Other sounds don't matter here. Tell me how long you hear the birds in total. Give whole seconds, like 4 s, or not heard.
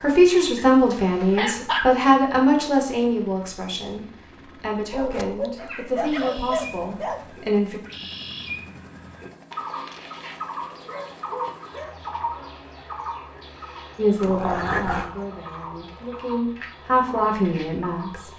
13 s.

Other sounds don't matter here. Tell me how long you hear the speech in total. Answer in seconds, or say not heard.
12 s.